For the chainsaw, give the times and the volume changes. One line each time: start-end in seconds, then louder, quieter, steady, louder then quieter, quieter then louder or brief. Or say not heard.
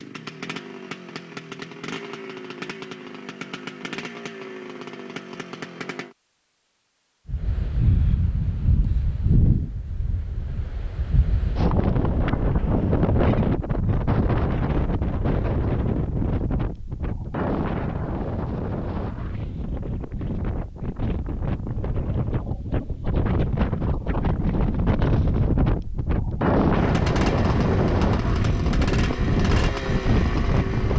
0.0-6.2 steady
26.8-30.9 steady.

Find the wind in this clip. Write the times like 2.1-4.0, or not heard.
7.2-30.9.